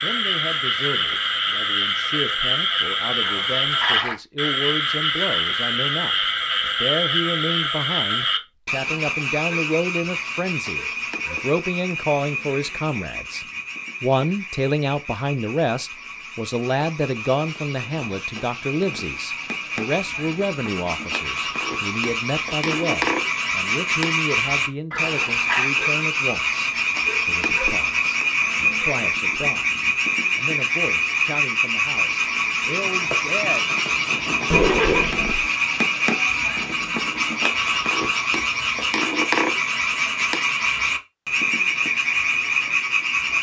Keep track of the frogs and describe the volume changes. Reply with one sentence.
The loudness of the frogs goes down, then up.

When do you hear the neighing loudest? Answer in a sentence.
The loudest moment of the neighing is at 35 seconds.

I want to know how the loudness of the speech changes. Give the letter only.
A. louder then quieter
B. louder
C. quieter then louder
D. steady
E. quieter
A.